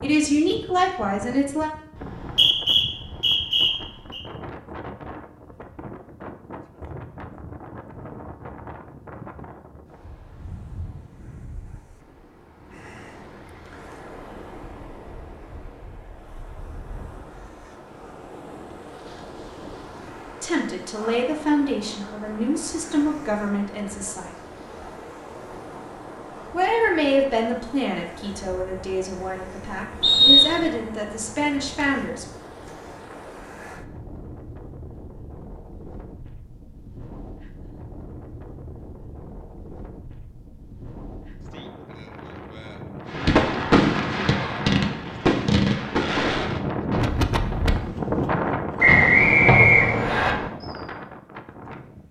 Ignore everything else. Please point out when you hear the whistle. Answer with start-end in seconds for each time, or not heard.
1.9-4.2, 30.0-30.6, 48.8-50.4.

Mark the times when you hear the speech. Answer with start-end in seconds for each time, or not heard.
0.0-1.7, 20.4-24.4, 26.5-32.2.